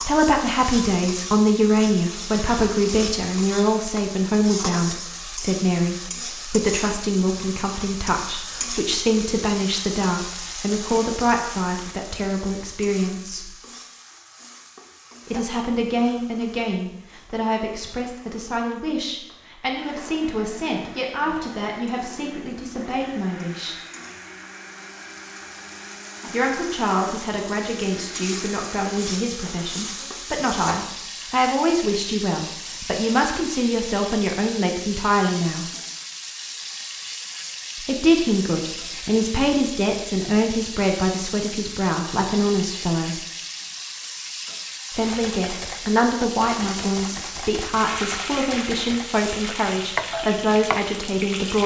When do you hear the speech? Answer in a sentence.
The speech can be heard from 0.0 to 13.5 s, from 15.2 to 23.8 s, from 26.3 to 35.6 s, from 37.8 to 43.2 s and from 44.9 to 51.6 s.